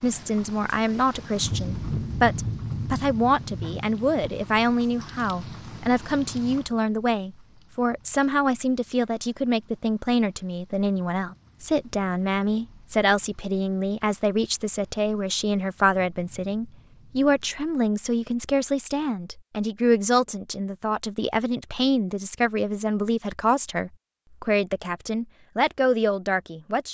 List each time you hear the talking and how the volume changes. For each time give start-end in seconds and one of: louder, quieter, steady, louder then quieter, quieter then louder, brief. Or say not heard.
0.0-26.8 steady.